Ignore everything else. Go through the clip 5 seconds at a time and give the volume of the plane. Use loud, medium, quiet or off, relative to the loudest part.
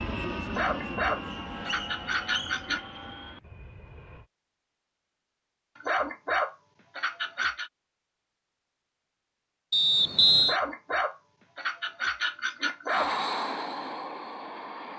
medium, off, loud.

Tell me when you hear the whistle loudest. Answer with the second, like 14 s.
10 s.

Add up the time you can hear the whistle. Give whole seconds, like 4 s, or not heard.
2 s.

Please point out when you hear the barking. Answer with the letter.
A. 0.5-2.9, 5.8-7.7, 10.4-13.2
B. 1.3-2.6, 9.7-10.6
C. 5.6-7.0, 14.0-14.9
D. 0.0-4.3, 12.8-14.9
A.